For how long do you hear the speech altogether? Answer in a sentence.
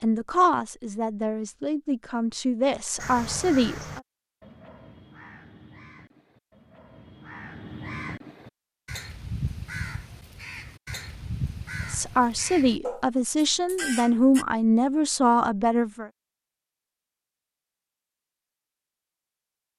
You can hear the speech for 8 seconds altogether.